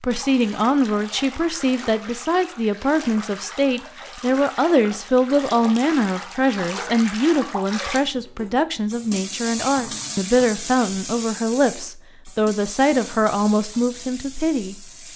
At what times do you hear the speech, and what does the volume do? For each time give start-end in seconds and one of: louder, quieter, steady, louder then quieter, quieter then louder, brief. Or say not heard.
0.0-15.1 steady.